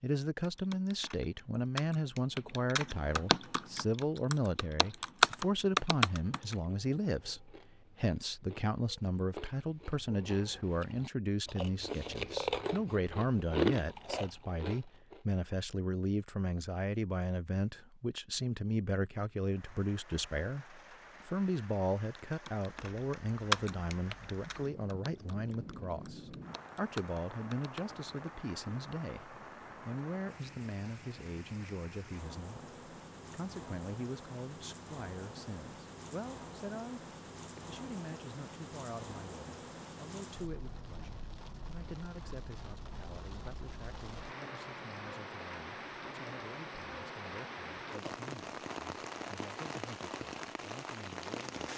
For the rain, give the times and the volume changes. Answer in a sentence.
You can hear the rain from 19.4 to 51.7 s, getting louder.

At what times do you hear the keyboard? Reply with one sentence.
You can hear the keyboard from 0.4 to 6.5 s and from 22.3 to 28.3 s.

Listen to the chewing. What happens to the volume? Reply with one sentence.
The volume of the chewing goes up.